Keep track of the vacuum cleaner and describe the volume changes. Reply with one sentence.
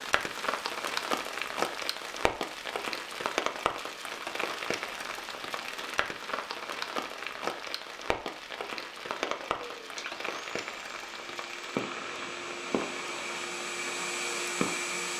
The loudness of the vacuum cleaner goes up.